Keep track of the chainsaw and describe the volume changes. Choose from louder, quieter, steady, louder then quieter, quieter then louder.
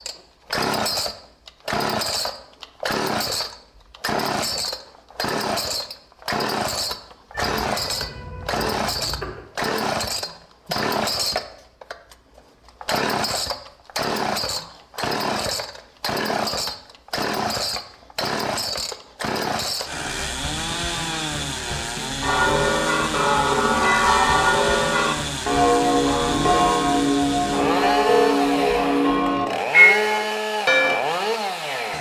steady.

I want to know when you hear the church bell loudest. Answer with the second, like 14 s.
30 s.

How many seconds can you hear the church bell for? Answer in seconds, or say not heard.
9 s.